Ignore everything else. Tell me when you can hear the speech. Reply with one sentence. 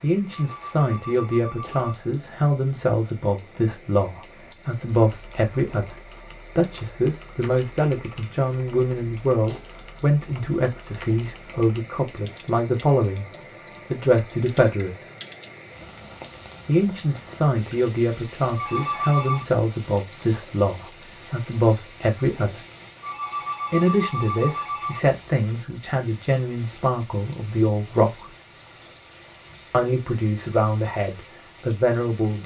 You can hear the speech from 0.0 to 6.0 s, from 6.5 to 13.3 s, from 13.9 to 15.1 s, from 16.6 to 22.6 s, from 23.7 to 28.3 s and from 29.7 to 32.4 s.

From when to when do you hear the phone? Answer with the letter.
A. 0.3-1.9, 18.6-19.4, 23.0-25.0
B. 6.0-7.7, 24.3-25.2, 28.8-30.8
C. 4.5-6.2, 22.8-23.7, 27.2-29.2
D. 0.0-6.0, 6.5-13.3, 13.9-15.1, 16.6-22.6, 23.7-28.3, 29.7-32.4
A.